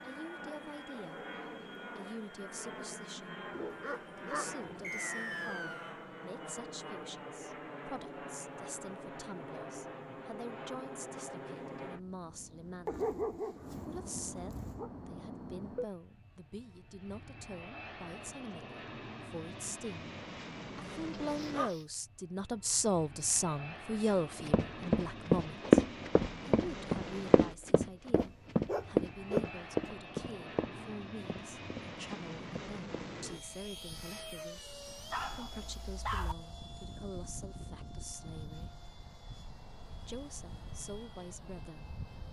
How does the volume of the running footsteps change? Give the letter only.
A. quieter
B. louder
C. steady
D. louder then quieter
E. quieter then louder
A.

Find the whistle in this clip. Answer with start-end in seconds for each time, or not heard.
4.8-6.0.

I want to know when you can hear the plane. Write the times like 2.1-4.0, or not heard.
0.0-42.2.